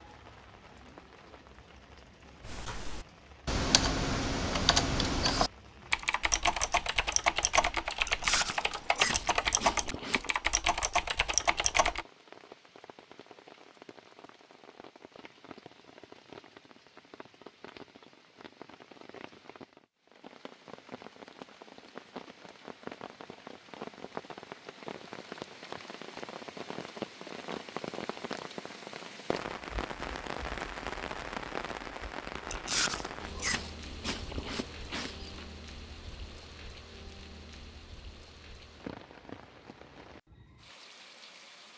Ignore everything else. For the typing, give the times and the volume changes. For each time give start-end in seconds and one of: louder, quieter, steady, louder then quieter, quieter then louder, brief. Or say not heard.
2.4-12.1 steady.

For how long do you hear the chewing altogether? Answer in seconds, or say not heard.
5 s.